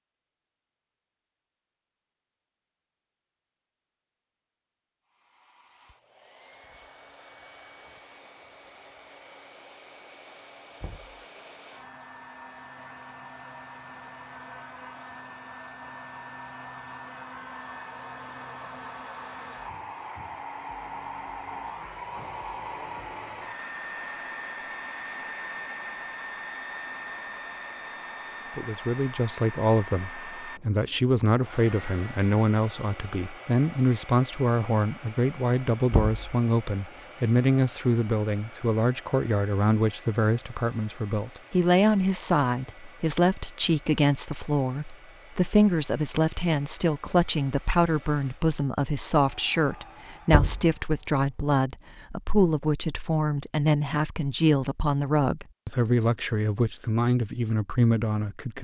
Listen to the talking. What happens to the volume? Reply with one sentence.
The loudness of the talking stays about the same.